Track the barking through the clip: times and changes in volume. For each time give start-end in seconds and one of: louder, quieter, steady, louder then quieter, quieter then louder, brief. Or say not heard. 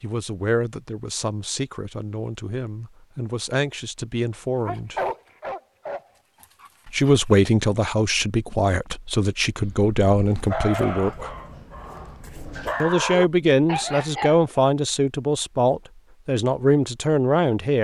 4.7-7.2 brief
9.6-14.4 quieter then louder.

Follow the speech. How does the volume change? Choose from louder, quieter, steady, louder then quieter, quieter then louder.
louder.